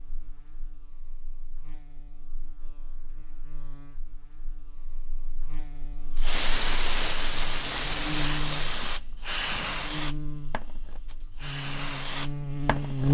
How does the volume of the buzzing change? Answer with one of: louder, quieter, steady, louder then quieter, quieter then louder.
louder.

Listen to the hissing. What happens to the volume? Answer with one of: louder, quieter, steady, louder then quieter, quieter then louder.
quieter then louder.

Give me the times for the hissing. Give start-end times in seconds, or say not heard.
6.2-13.0.